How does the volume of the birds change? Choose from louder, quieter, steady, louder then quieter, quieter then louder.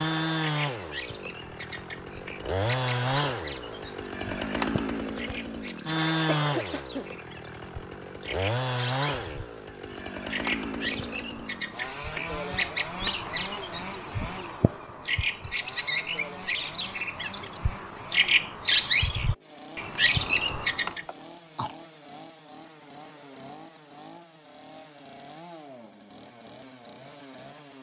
louder.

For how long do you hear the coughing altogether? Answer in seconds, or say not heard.
2 s.